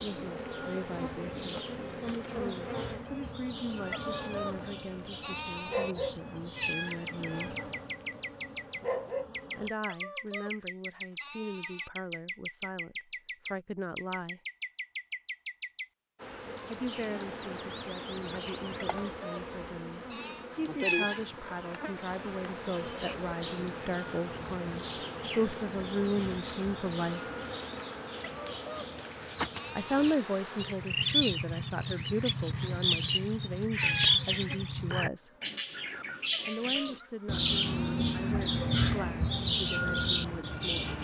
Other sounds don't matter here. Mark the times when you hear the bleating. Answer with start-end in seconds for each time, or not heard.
3.9-6.0, 9.8-11.9, 18.8-20.5, 28.2-30.1, 36.3-38.4.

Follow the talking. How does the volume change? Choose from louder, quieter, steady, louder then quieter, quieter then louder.
louder then quieter.